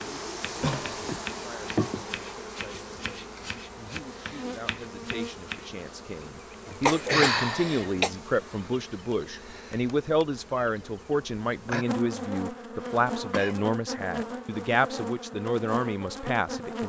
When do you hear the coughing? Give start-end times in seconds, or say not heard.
0.6-1.1, 6.8-8.1, 12.8-13.6.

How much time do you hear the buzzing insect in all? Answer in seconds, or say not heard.
17 s.